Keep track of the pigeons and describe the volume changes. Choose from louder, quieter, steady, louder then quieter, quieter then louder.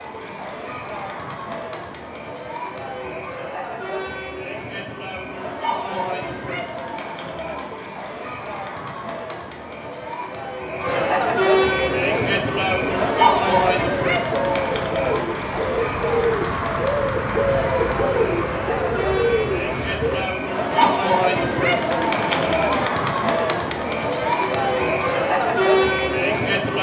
louder then quieter.